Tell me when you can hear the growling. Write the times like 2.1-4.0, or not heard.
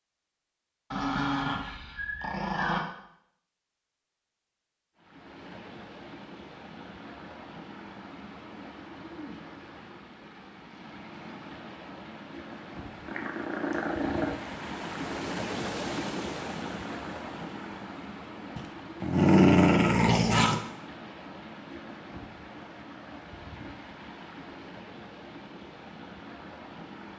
0.9-2.9, 13.1-14.3, 18.6-20.6.